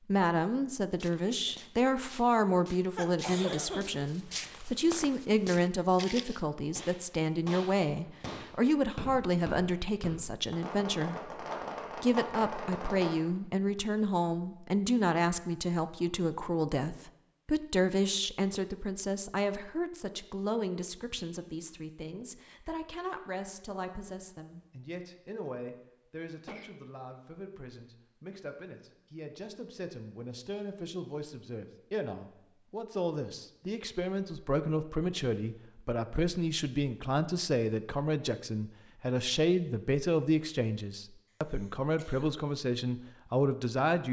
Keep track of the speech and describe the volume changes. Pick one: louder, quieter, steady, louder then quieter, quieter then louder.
quieter then louder.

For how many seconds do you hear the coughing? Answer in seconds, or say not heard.
3 s.